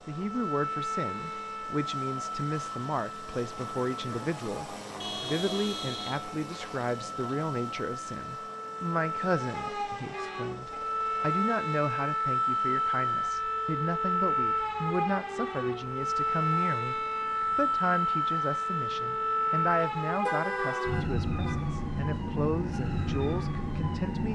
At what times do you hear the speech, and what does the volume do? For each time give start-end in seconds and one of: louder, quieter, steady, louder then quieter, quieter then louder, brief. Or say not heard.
0.1-24.3 steady.